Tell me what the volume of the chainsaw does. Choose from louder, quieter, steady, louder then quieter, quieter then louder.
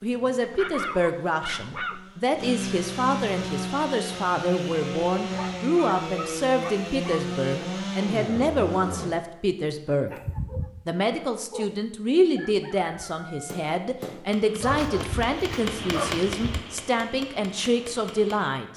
louder.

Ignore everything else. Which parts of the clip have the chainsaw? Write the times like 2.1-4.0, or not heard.
0.0-9.2.